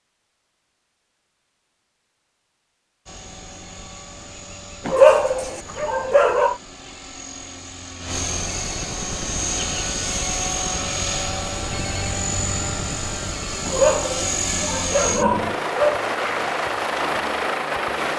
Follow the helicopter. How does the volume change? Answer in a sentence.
The volume of the helicopter goes up.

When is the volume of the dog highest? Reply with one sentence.
The volume of the dog peaks at 5 seconds.